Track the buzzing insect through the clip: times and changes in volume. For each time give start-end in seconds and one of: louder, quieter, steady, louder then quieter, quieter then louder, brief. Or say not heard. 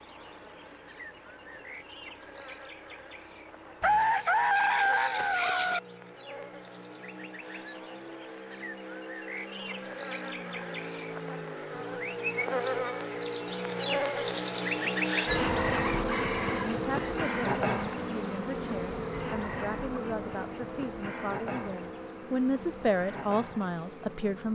0.0-24.5 louder then quieter.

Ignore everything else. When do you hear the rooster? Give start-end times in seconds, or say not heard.
3.8-5.8, 15.8-17.8.